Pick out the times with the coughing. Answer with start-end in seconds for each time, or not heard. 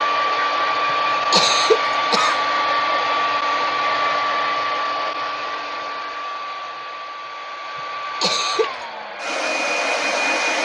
1.3-2.4, 8.2-8.7.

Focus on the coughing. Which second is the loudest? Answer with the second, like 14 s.
2 s.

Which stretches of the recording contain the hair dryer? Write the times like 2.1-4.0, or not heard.
0.0-10.6.